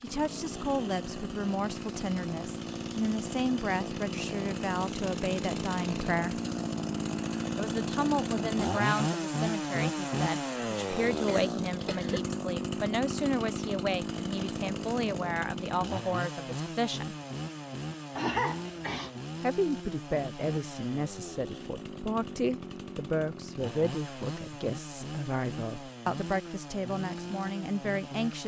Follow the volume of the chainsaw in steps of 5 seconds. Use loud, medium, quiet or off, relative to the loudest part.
medium, loud, loud, medium, medium, medium.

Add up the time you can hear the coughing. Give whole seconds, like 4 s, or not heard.
2 s.